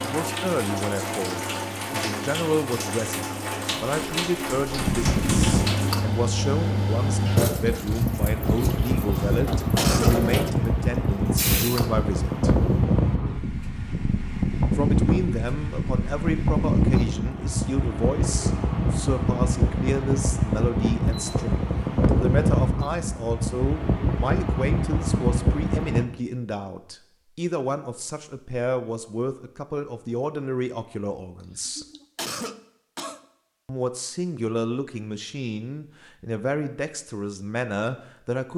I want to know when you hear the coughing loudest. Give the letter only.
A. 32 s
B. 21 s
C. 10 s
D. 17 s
C.